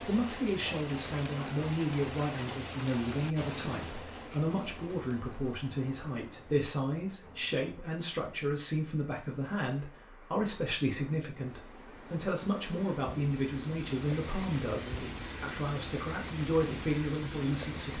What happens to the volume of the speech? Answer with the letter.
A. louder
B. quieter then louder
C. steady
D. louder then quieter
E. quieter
C.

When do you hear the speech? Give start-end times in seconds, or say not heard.
0.0-17.9.